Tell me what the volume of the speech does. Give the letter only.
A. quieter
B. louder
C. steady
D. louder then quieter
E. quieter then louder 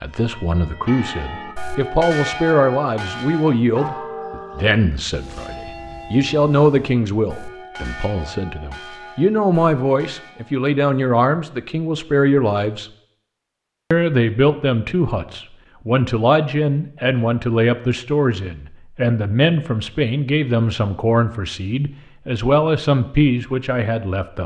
C.